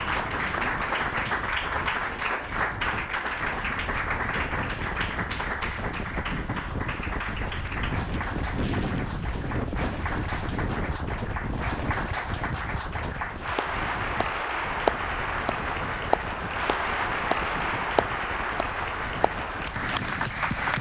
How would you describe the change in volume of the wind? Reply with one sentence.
The volume of the wind goes up, then down.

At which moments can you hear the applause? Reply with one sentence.
The applause can be heard from 0.0 to 20.7 s.